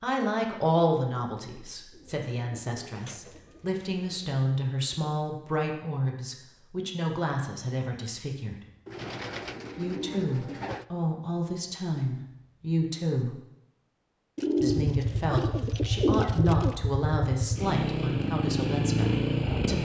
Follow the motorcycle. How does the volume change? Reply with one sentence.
The loudness of the motorcycle goes up.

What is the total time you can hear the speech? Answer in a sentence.
The speech can be heard for 17 seconds in total.